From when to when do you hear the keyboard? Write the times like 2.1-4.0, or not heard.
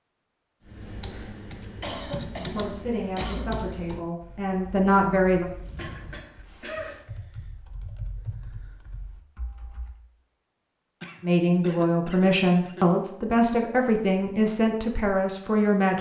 0.7-10.0.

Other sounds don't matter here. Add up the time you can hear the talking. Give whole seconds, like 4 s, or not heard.
8 s.